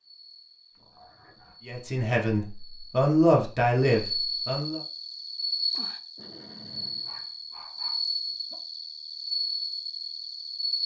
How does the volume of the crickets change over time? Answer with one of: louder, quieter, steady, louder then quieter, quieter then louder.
louder.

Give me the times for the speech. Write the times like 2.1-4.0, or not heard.
1.6-4.8.